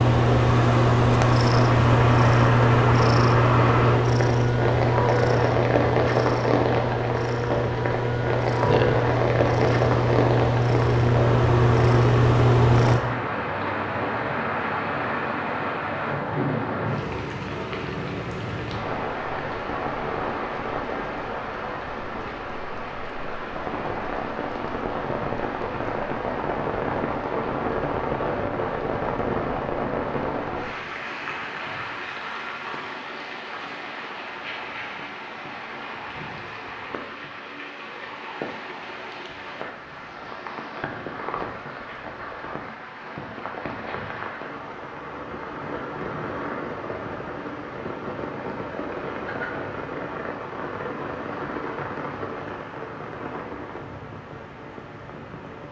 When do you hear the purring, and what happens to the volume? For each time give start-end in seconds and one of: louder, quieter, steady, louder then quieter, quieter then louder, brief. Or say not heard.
0.0-13.1 quieter then louder.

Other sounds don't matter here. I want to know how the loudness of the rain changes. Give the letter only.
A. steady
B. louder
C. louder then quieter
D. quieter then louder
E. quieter
E.